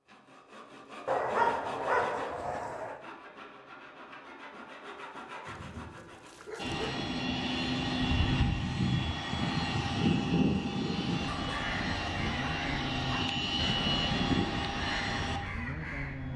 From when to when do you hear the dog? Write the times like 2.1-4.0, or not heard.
1.1-3.0, 5.5-7.0, 11.2-13.3.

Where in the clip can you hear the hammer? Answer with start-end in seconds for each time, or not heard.
not heard.